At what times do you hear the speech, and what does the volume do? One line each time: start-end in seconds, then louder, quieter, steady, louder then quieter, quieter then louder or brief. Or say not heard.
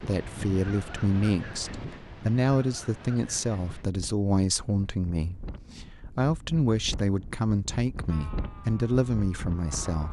0.0-10.0 steady.